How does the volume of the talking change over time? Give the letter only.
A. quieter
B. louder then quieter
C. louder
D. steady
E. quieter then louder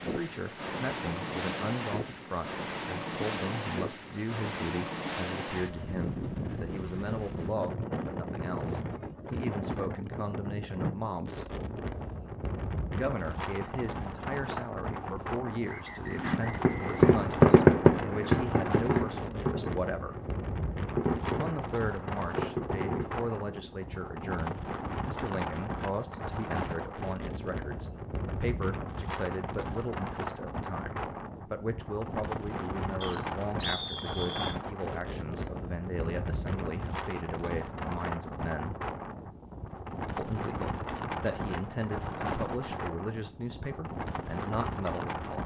D.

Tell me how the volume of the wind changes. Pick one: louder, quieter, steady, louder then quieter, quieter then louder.
steady.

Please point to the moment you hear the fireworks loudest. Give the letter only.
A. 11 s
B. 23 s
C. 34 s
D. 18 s
D.